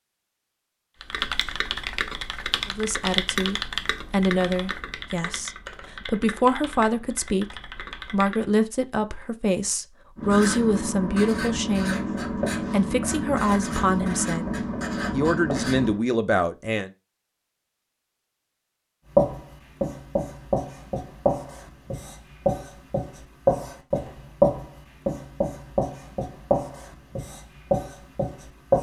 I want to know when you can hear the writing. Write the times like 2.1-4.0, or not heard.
10.2-15.9, 19.1-28.7.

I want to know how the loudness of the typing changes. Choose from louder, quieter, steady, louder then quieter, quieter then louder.
quieter.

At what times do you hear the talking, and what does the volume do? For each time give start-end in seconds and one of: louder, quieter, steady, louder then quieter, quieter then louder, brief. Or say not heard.
2.6-12.1 steady
12.7-16.9 quieter then louder.